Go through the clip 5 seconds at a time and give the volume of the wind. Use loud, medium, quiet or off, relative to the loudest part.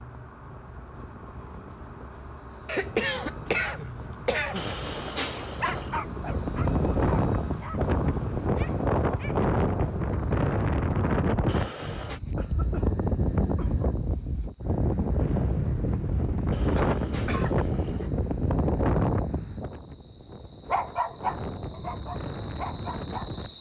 quiet, loud, loud, loud, medium.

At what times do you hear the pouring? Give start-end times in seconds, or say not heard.
4.5-5.9, 11.4-12.2, 16.5-18.1.